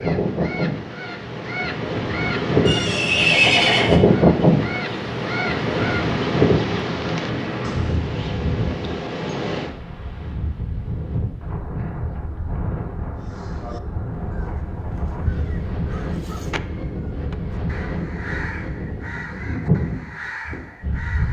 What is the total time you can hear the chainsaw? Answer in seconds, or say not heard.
not heard.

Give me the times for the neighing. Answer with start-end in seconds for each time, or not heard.
2.6-4.0.